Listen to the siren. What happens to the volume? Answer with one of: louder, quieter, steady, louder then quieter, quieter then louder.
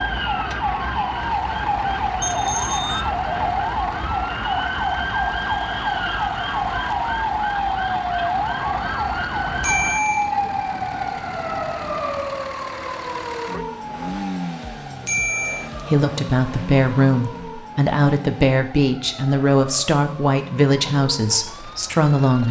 quieter.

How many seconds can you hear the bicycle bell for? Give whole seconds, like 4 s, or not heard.
2 s.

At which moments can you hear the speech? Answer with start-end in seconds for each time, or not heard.
15.8-22.4.